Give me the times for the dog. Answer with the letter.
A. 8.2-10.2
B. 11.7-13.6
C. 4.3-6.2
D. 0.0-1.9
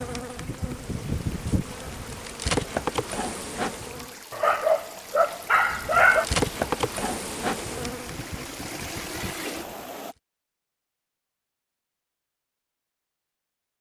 C.